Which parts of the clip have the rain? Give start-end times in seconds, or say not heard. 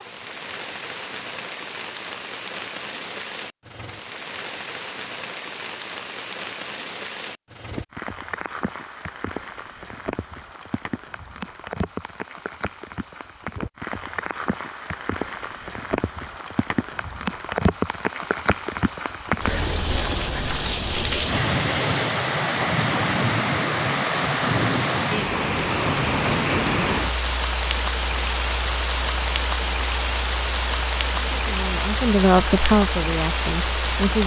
0.0-34.2.